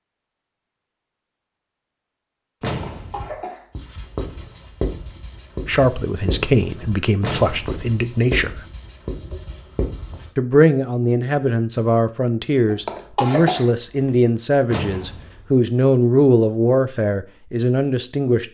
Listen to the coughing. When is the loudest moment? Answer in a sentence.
The volume of the coughing peaks at 13 seconds.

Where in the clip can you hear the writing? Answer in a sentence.
You can hear the writing from 3.1 to 10.3 s.